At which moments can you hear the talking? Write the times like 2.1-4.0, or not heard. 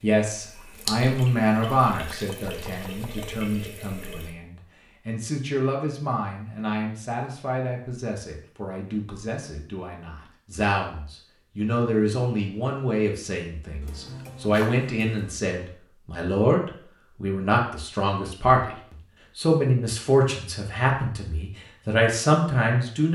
0.0-23.1.